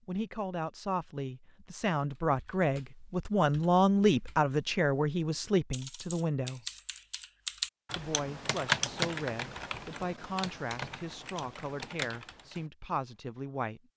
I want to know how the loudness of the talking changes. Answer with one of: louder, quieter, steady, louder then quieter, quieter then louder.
louder then quieter.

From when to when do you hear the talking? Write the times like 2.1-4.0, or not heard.
0.1-6.6, 8.0-13.8.